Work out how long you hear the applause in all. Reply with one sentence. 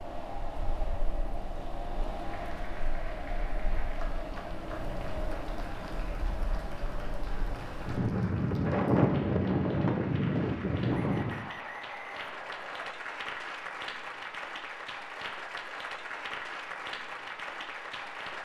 You can hear the applause for 16 seconds altogether.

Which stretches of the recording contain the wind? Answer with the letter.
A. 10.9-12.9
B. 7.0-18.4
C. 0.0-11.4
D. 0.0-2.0
C.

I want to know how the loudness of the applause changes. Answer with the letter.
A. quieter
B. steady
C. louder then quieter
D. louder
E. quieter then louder
D.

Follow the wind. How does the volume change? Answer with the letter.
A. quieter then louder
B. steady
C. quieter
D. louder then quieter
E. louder
E.